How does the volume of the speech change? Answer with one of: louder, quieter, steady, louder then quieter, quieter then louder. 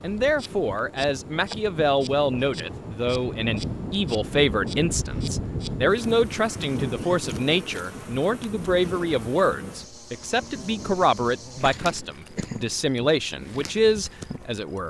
steady.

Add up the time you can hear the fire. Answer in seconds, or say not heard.
not heard.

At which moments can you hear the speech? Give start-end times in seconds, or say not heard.
0.0-14.8.